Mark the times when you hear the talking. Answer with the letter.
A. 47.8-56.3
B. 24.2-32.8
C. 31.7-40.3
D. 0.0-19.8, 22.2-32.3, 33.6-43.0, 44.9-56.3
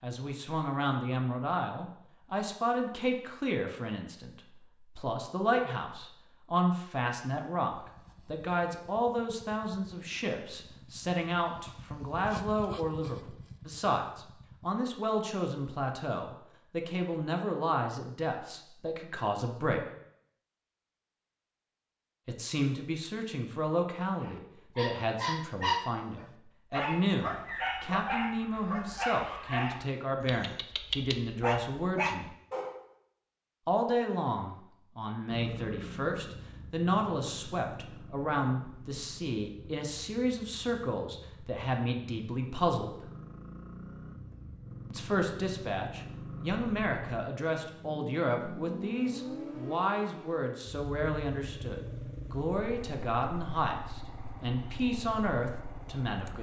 D.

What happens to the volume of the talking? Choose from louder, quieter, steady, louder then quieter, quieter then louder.
steady.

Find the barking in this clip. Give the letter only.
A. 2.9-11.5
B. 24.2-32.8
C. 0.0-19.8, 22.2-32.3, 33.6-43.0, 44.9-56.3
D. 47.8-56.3
B.